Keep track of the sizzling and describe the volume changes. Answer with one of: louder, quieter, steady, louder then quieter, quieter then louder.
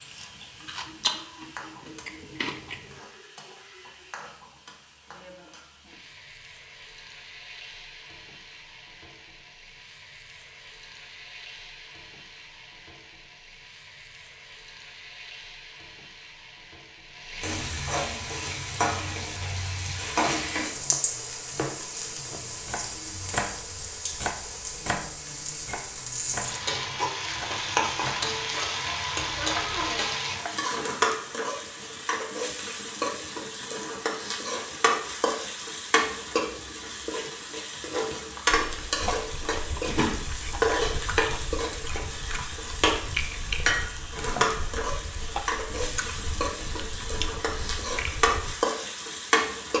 louder.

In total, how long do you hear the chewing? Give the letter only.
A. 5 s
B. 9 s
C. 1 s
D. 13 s
D.